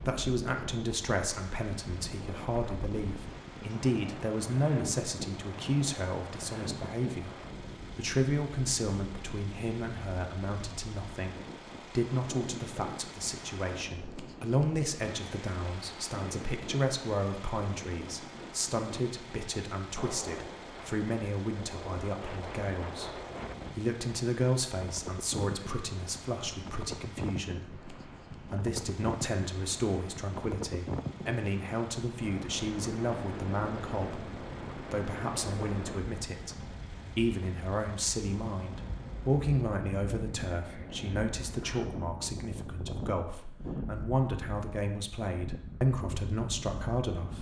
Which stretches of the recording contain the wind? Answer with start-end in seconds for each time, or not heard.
0.0-47.3.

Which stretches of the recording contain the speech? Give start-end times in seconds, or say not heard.
0.1-7.3, 8.0-11.3, 11.9-47.3.